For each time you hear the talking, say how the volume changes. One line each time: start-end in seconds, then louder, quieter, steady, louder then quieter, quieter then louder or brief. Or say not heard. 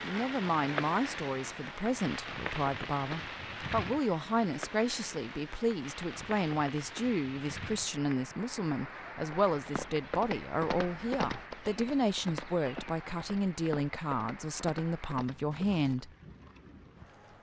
0.0-16.1 steady.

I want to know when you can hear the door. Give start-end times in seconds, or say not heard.
not heard.